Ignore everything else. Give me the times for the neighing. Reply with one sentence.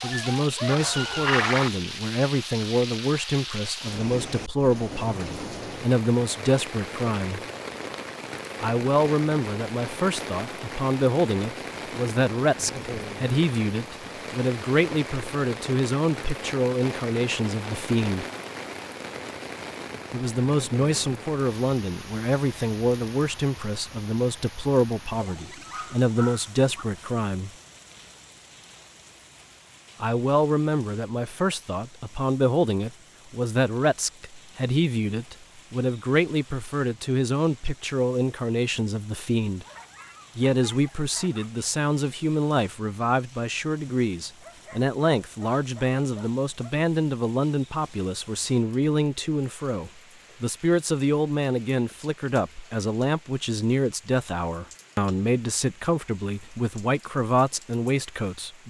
You can hear the neighing from 0.7 to 1.7 s.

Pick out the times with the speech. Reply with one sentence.
You can hear the speech from 0.0 to 7.4 s, from 8.6 to 18.2 s, from 20.1 to 27.5 s, from 30.0 to 39.6 s and from 40.4 to 58.6 s.